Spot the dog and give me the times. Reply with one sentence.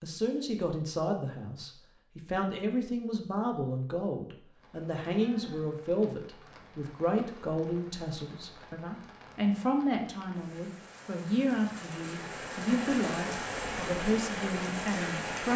You can't hear the dog here.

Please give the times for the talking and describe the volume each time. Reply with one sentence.
The talking can be heard from 0.0 to 15.5 s, at a steady volume.